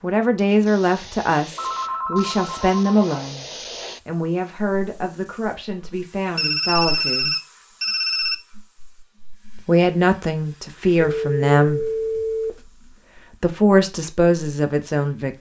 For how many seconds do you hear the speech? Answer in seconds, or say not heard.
13 s.